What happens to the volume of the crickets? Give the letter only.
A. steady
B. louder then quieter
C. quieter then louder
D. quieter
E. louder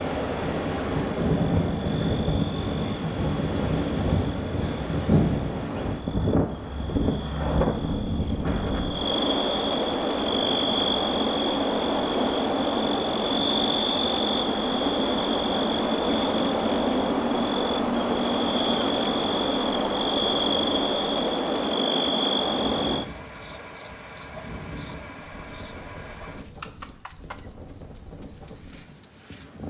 E.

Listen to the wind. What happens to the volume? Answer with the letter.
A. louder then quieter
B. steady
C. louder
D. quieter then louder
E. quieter
E.